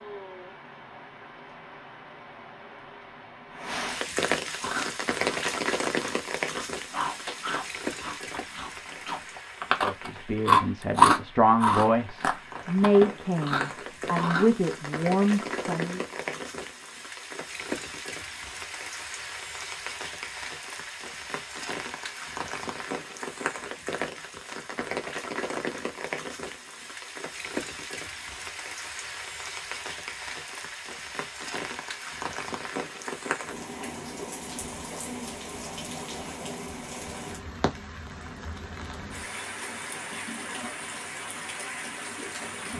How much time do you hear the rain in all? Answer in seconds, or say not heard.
43 s.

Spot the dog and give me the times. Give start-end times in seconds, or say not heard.
not heard.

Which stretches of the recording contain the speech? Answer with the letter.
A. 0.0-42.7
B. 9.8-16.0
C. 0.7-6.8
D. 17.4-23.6
B.